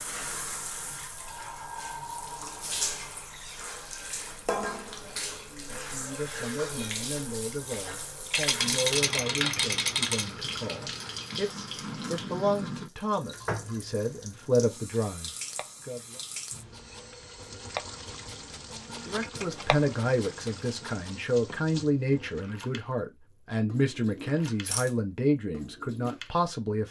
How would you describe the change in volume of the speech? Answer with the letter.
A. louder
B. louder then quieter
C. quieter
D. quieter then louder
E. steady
A.